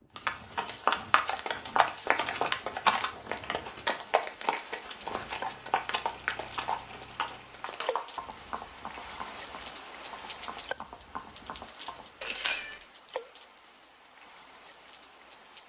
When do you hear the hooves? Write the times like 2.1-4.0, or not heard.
0.1-12.2.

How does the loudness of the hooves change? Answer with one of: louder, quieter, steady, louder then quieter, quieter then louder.
quieter.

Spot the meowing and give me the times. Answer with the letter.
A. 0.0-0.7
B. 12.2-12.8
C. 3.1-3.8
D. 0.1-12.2
B.